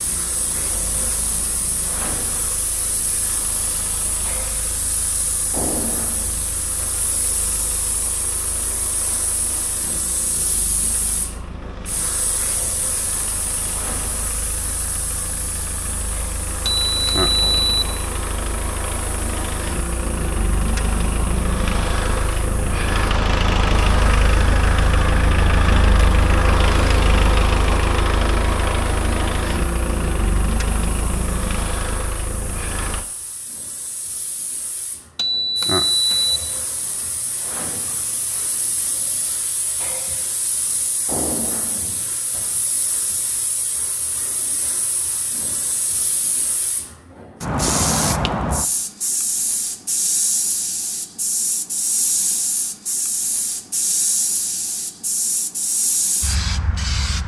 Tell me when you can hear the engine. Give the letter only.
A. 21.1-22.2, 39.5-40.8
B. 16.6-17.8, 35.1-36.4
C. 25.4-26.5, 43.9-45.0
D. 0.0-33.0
D.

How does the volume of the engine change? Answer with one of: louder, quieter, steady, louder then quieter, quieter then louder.
louder.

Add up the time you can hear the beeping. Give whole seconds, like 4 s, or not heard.
2 s.